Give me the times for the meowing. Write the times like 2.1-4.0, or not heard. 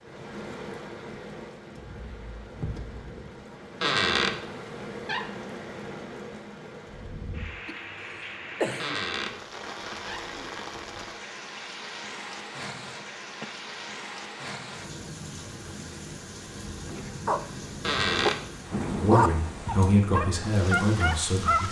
not heard.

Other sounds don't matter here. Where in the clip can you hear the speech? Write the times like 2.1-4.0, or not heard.
18.9-21.6.